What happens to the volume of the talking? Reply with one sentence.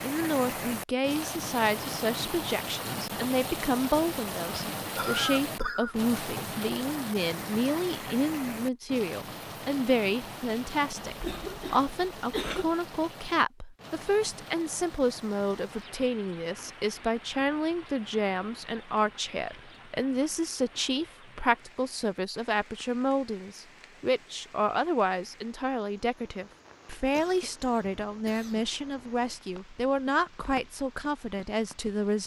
The volume of the talking stays about the same.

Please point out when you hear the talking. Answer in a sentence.
The talking can be heard from 0.0 to 32.2 s.